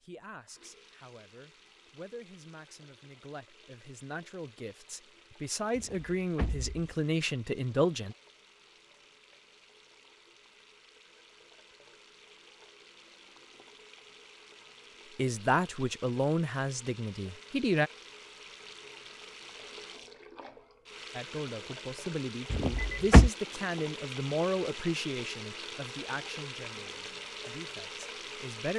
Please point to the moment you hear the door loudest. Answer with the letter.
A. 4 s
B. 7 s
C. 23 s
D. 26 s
C.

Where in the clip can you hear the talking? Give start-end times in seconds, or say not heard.
0.0-8.2, 15.2-17.9, 21.1-28.7.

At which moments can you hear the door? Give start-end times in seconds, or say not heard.
5.8-7.0, 22.5-23.3.